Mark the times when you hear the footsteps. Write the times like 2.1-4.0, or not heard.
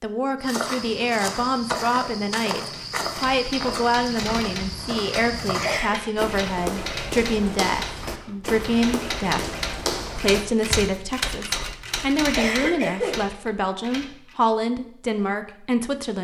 0.4-11.3.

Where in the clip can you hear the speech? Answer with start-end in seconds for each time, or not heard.
0.0-9.4, 10.2-16.1.